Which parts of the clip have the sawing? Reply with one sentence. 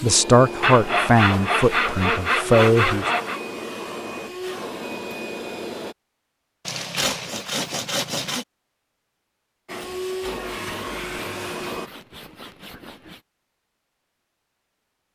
You can hear the sawing from 0.6 to 3.4 s, from 6.7 to 8.4 s and from 10.2 to 13.2 s.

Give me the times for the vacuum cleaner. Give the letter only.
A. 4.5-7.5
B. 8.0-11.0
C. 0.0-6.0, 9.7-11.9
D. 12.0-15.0
C.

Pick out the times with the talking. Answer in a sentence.
You can hear the talking from 0.0 to 3.0 s.